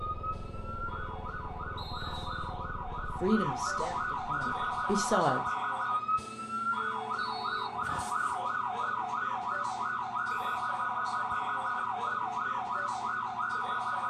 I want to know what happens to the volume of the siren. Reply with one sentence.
The loudness of the siren goes up.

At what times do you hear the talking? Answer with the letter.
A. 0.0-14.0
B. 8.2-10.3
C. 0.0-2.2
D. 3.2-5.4
D.